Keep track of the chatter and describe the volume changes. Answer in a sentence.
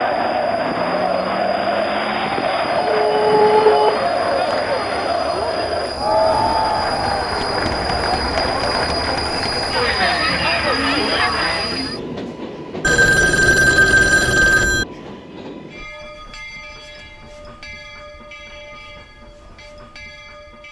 The volume of the chatter stays about the same.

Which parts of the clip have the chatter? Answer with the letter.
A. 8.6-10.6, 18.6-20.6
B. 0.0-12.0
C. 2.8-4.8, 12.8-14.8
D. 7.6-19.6
B.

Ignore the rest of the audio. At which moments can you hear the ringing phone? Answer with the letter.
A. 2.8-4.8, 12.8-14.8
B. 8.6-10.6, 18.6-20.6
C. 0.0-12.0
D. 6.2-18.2
A.